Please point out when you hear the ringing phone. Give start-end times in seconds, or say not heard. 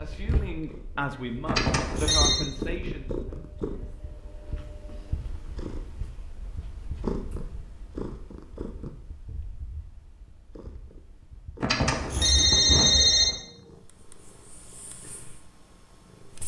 1.4-2.4, 11.6-13.3.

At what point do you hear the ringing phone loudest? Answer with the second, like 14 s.
13 s.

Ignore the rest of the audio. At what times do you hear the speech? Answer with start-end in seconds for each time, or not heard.
0.0-3.1.